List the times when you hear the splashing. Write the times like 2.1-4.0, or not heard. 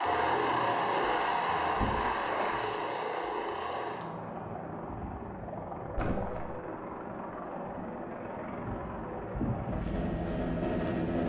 1.7-2.7, 6.0-6.5.